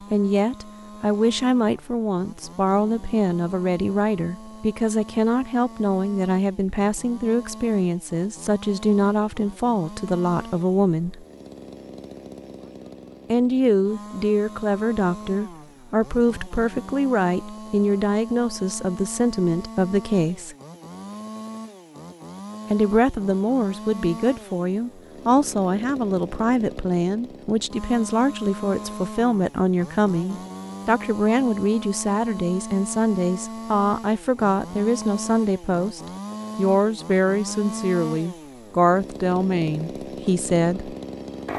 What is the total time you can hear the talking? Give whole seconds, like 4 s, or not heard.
37 s.